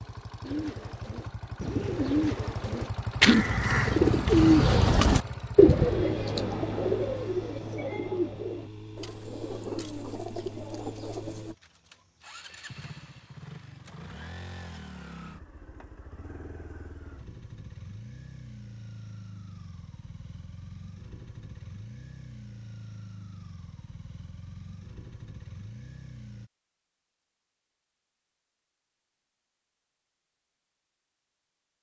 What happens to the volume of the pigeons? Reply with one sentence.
The loudness of the pigeons goes up, then down.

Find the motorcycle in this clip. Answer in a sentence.
The motorcycle can be heard from 0.0 to 26.5 s.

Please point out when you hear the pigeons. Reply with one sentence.
You can hear the pigeons from 0.4 to 11.6 s.